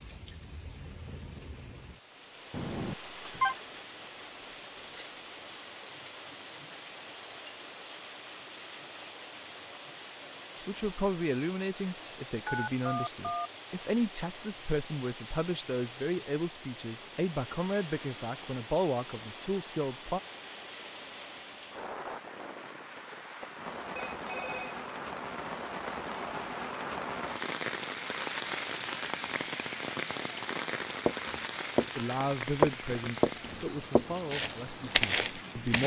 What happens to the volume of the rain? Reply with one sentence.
The volume of the rain goes up.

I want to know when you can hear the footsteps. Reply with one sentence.
You can hear the footsteps from 31.1 to 31.9 s and from 32.6 to 35.8 s.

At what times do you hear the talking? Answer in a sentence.
The talking can be heard from 10.7 to 20.2 s and from 31.9 to 35.8 s.